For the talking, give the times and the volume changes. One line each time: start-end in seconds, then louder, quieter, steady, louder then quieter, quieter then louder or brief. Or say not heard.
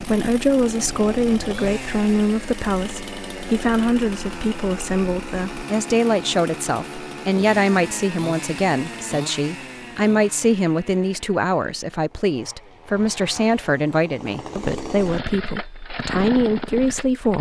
0.0-17.3 steady.